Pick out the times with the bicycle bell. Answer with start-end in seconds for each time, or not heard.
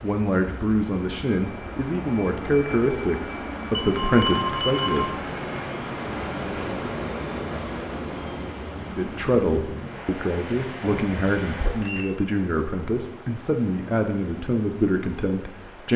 3.7-5.1, 10.8-12.2.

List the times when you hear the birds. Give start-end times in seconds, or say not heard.
not heard.